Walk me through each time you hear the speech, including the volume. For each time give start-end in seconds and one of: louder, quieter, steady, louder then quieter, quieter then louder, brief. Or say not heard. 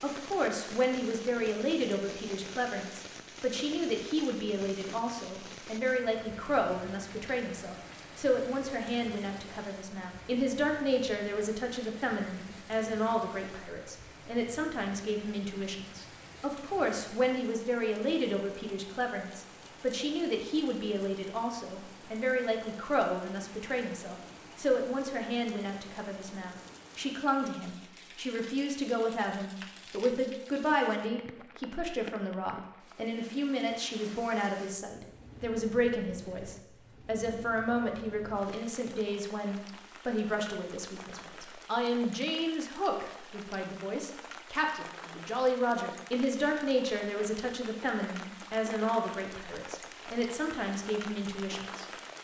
0.0-51.9 steady.